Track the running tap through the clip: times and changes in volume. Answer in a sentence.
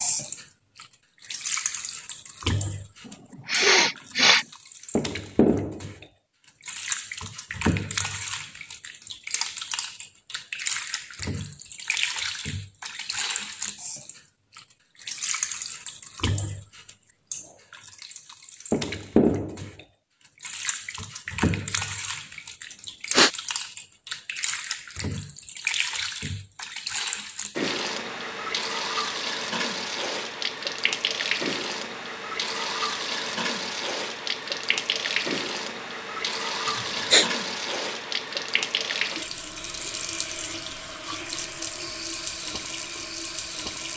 You can hear the running tap from 0.0 to 43.9 s, at a steady volume.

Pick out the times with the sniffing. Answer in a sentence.
You can hear the sniffing from 3.0 to 4.5 s, from 22.7 to 23.3 s and from 36.6 to 37.3 s.